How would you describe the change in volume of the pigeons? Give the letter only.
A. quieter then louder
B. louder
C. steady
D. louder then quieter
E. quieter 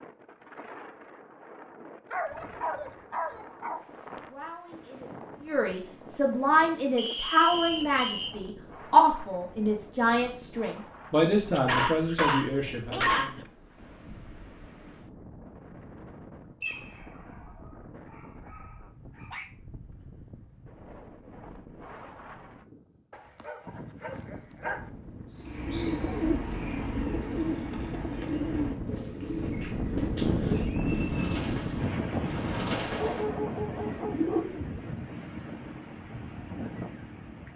A.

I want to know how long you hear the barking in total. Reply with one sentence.
The barking can be heard for 9 seconds in total.